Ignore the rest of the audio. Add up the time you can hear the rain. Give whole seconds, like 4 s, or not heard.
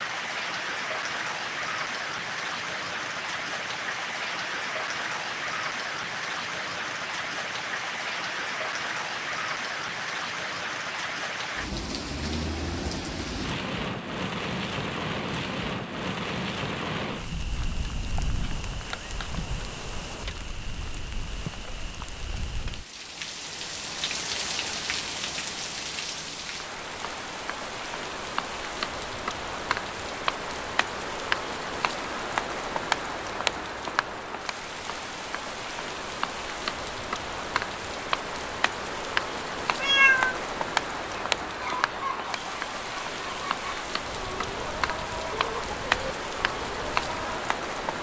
48 s.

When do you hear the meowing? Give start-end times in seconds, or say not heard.
39.8-40.4.